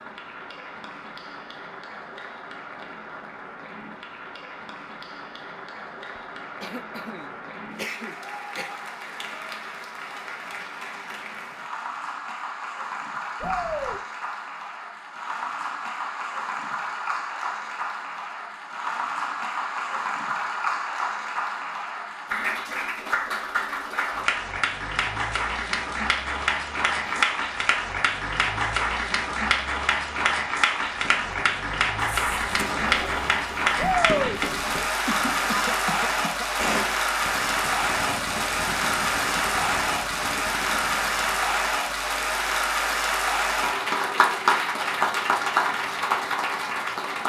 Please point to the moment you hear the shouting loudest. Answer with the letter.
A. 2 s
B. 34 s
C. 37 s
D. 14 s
B.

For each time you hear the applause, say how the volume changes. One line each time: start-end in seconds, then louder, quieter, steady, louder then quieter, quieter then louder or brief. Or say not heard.
0.0-47.2 louder.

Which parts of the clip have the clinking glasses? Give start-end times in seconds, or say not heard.
not heard.